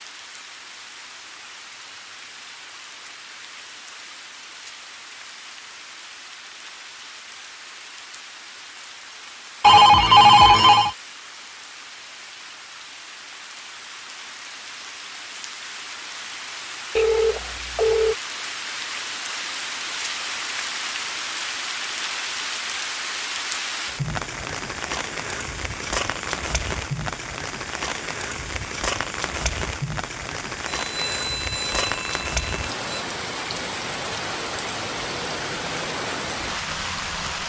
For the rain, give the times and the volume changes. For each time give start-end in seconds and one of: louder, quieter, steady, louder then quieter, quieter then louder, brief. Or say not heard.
0.0-37.4 louder.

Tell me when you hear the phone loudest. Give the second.
10 s.